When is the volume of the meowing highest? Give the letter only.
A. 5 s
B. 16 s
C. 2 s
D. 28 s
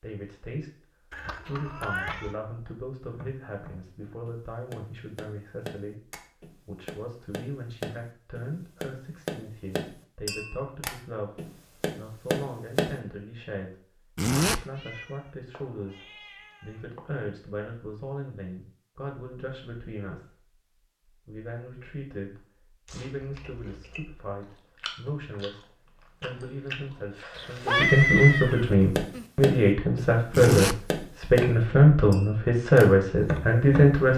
D.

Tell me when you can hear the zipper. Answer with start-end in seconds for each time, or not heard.
14.2-14.6, 30.3-30.8.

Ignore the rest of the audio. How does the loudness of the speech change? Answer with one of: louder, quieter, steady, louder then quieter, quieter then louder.
louder.